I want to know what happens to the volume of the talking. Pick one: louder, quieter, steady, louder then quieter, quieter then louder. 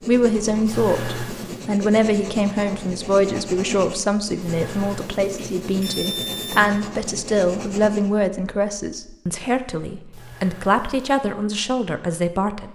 steady.